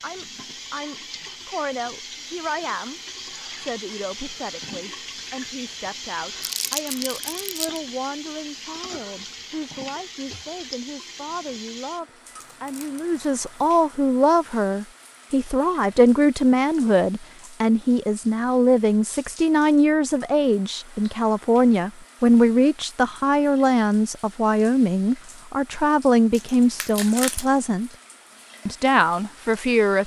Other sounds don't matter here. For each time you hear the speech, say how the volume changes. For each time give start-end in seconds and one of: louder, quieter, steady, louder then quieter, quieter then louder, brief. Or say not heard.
0.0-27.9 louder
28.6-30.0 brief.